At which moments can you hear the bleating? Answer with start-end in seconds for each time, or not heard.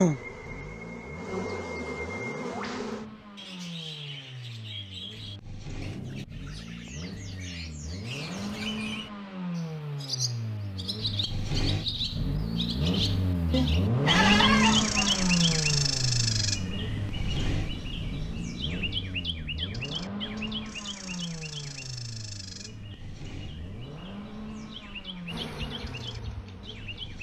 13.5-15.2.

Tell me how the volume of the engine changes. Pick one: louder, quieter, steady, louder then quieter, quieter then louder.
louder then quieter.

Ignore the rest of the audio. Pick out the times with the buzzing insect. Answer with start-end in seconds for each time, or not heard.
0.0-3.0, 25.3-27.1.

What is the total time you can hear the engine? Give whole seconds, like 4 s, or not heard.
27 s.